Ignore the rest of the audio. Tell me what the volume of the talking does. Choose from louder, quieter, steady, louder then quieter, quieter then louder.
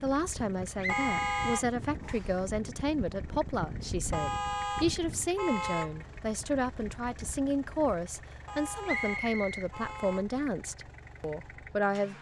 steady.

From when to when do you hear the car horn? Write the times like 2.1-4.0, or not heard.
0.8-1.6, 4.1-6.0, 8.4-10.4.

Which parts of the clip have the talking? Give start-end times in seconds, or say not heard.
0.0-12.1.